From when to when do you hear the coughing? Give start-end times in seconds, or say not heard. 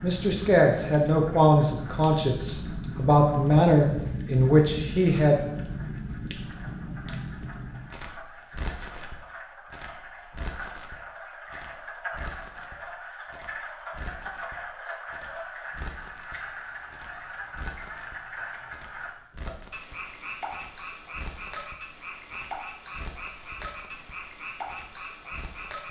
not heard.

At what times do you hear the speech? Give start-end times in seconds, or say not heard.
0.0-5.4.